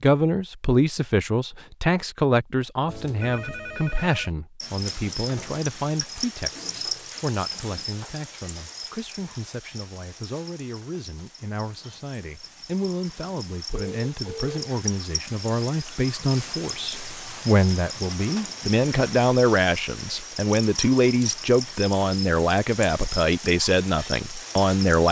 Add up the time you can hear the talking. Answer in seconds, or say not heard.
25 s.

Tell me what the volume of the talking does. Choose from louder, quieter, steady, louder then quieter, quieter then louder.
quieter then louder.